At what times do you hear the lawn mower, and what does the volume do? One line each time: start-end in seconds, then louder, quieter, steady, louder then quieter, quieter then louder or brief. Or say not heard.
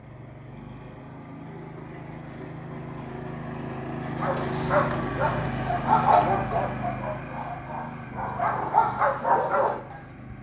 0.0-10.3 louder then quieter.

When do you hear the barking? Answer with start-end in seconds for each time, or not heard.
4.2-10.0.